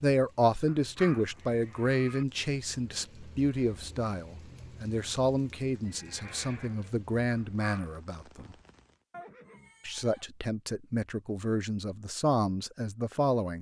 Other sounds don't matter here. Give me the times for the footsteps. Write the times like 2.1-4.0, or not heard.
not heard.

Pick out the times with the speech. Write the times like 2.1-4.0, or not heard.
0.0-8.6, 9.8-13.5.